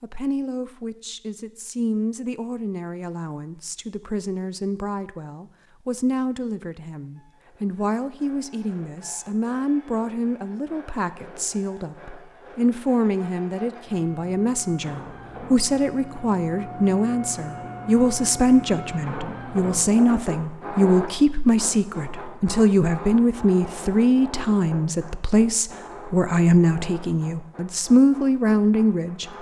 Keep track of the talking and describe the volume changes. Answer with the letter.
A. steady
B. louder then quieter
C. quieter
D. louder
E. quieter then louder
D.